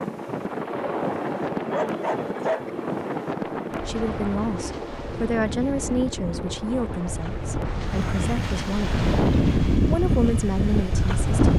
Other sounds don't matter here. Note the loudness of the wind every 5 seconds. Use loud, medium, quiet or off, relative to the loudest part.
medium, loud, loud.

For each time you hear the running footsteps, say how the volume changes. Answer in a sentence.
The running footsteps can't be heard in this clip.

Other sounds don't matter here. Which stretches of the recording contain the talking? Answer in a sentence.
The talking can be heard from 3.9 to 8.9 s and from 9.8 to 11.5 s.